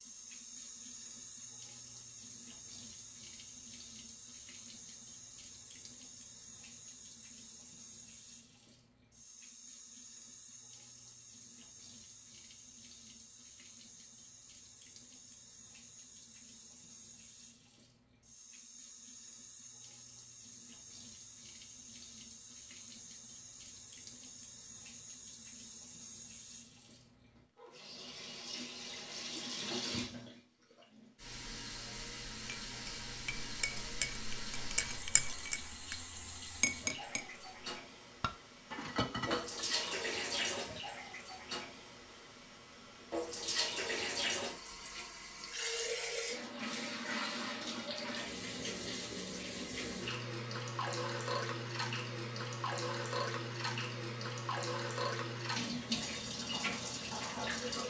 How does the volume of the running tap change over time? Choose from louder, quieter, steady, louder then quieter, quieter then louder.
louder.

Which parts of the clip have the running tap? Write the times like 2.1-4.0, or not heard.
0.0-57.8.